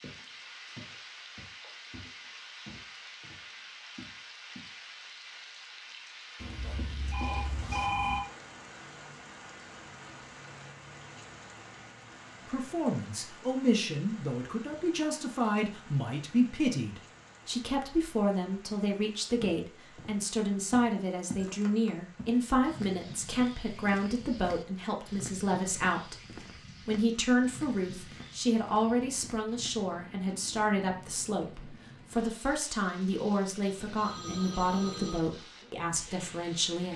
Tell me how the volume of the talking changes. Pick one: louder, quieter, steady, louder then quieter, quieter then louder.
steady.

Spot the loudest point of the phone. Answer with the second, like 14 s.
8 s.